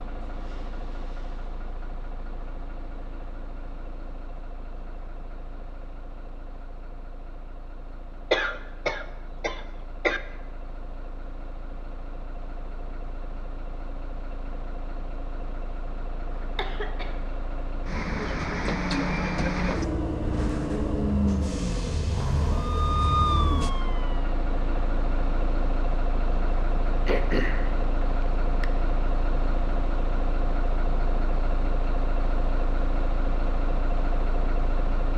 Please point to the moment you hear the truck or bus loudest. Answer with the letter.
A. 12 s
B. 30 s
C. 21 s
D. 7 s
C.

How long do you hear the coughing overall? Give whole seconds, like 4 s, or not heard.
4 s.